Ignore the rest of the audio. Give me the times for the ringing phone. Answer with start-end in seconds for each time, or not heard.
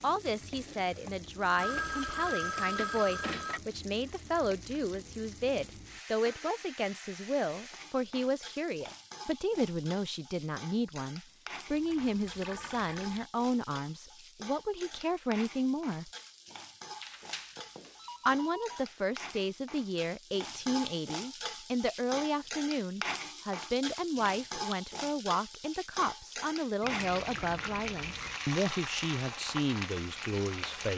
1.6-3.6, 17.0-18.8, 26.8-28.4.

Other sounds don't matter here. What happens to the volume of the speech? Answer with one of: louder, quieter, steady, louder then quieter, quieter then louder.
steady.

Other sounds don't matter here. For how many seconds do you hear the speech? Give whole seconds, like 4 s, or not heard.
29 s.